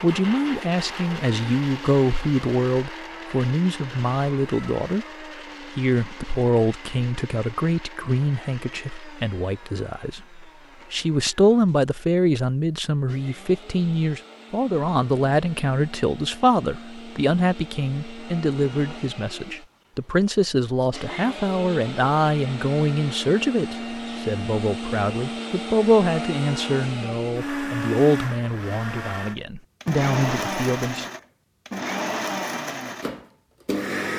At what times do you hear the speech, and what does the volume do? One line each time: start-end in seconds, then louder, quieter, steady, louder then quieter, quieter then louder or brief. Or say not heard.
0.0-31.1 steady.